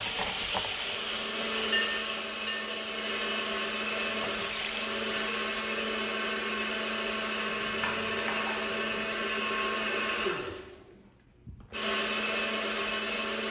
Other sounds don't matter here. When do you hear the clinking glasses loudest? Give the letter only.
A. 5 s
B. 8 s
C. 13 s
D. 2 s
D.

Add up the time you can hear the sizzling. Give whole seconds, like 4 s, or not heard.
4 s.